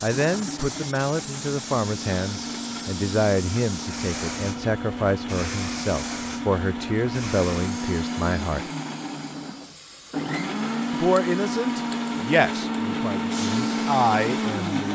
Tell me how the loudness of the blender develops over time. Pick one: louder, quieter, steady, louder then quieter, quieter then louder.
louder.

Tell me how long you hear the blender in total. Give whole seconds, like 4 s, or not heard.
15 s.